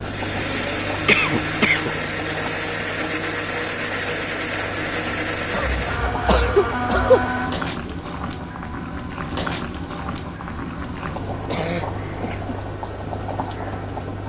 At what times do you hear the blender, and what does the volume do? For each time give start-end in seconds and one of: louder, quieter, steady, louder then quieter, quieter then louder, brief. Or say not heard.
0.0-14.2 quieter.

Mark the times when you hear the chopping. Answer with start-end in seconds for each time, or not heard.
not heard.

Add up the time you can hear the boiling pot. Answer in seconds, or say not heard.
14 s.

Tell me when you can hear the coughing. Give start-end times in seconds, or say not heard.
1.1-1.9, 5.5-7.2, 11.4-12.6.